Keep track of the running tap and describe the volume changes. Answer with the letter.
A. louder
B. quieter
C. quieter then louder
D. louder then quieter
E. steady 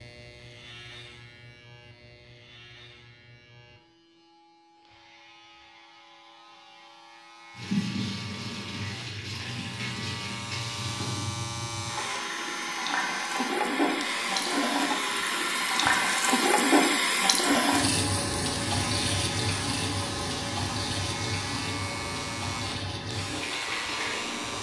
D.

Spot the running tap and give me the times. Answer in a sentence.
The running tap can be heard from 7.5 to 24.5 s.